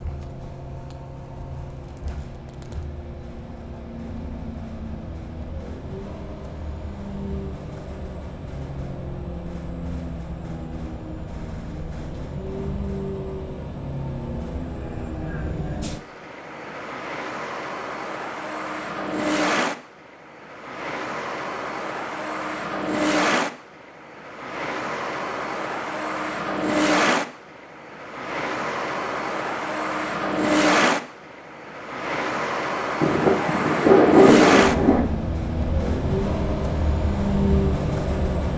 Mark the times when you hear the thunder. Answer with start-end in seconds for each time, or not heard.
33.0-35.0.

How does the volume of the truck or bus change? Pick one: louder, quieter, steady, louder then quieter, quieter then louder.
louder.